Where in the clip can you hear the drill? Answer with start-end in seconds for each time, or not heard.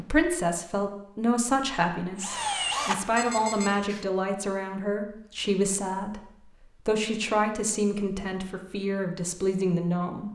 2.1-4.0.